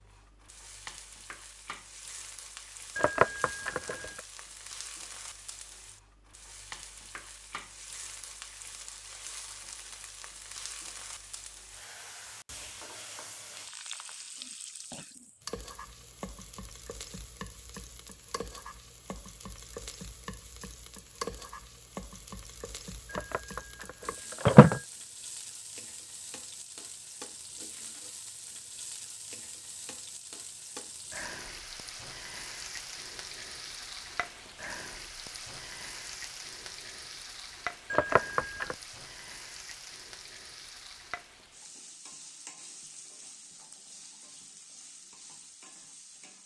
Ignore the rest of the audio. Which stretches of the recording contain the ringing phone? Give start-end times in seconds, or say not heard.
3.0-4.1, 23.1-24.9, 37.9-38.8.